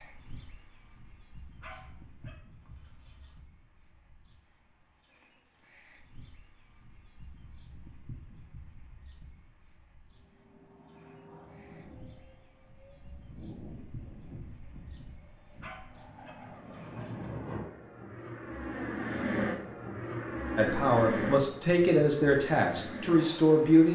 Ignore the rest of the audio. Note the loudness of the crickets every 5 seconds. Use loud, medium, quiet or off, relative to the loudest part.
loud, loud, loud, medium, off.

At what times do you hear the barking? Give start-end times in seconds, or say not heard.
1.6-3.4, 15.6-17.4.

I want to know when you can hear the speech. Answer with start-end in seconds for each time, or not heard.
20.6-23.9.